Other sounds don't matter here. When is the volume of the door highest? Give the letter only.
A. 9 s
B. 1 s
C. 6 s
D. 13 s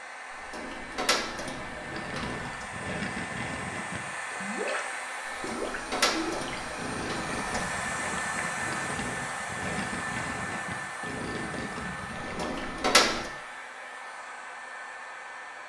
D.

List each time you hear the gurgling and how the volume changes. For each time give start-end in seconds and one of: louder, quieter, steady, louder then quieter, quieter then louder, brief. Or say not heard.
1.8-12.8 steady.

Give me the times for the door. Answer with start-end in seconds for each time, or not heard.
0.3-2.6, 5.2-7.7, 12.2-13.3.